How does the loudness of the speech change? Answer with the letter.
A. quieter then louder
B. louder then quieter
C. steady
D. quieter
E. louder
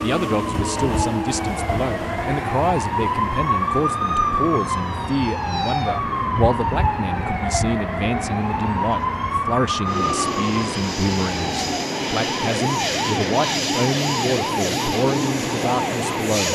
C.